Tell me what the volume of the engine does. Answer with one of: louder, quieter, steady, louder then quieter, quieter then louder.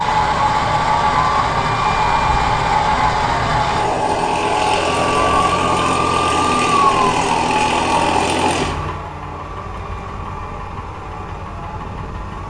quieter.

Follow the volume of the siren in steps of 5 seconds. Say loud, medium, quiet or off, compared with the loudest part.
loud, loud, quiet.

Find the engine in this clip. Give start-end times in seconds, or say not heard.
0.0-12.4.